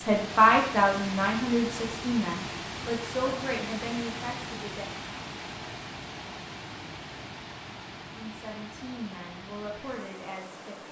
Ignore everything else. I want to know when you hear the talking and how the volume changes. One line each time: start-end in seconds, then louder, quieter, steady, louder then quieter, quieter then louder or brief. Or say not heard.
0.0-4.9 quieter
8.2-10.8 brief.